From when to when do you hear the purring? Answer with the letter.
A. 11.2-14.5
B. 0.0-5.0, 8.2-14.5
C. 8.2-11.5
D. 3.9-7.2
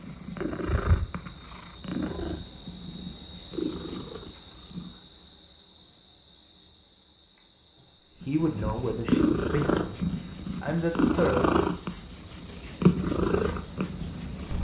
B.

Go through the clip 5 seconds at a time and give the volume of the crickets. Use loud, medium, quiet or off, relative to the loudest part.
loud, medium, medium.